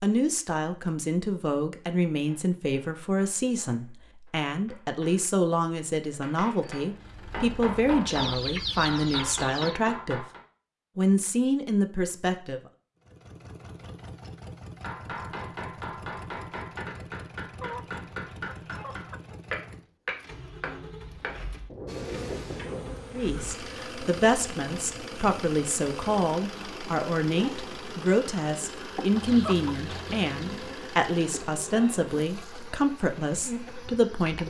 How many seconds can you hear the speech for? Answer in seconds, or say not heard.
23 s.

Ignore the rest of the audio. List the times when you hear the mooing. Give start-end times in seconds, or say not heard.
not heard.